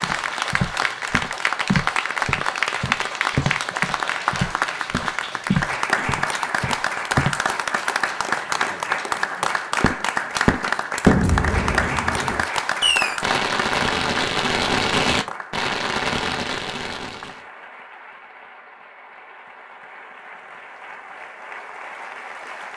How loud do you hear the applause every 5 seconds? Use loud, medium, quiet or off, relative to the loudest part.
loud, loud, loud, quiet, quiet.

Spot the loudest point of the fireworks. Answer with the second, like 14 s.
11 s.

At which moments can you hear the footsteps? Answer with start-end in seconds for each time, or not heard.
0.0-7.4.